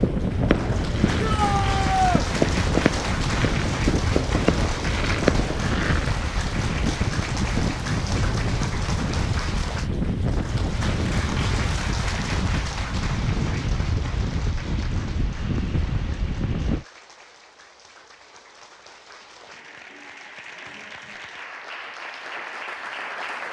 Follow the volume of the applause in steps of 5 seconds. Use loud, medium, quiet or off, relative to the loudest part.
loud, loud, loud, quiet, loud.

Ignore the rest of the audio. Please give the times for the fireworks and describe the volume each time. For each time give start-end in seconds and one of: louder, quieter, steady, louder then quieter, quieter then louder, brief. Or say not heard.
0.0-6.1 steady.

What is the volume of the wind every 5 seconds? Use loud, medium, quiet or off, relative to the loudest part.
loud, loud, loud, loud, off.